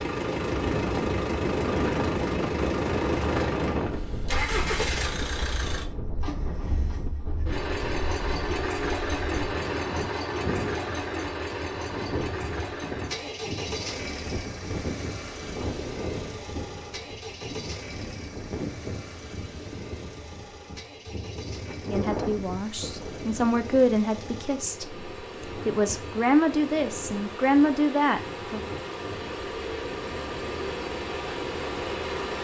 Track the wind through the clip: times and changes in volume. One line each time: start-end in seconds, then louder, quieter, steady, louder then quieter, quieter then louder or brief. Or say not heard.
0.0-32.3 quieter.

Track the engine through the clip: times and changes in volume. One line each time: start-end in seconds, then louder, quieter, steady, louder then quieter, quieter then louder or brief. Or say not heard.
0.0-32.3 quieter then louder.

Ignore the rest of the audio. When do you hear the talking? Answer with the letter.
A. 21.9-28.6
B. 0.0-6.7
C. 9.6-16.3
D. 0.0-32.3
A.